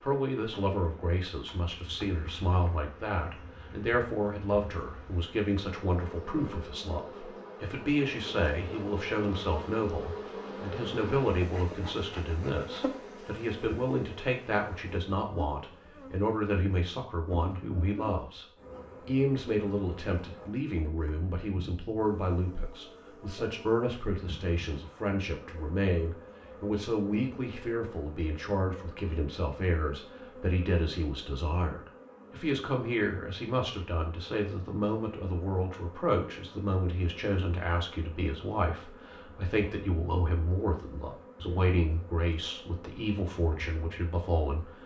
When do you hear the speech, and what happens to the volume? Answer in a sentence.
The speech can be heard from 0.0 to 18.4 s, at a steady volume; and from 19.1 to 44.8 s, at a steady volume.